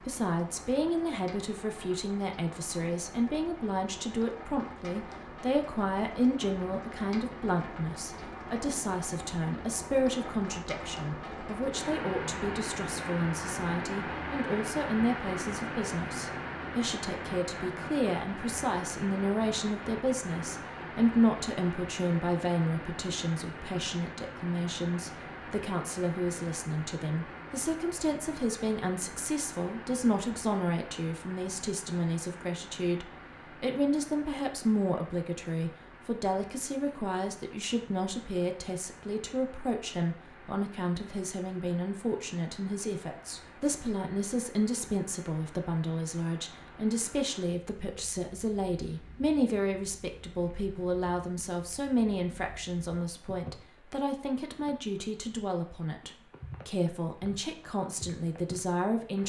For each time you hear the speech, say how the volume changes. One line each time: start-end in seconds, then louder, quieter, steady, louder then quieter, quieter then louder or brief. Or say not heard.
0.1-59.2 steady.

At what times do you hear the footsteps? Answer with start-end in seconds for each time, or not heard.
not heard.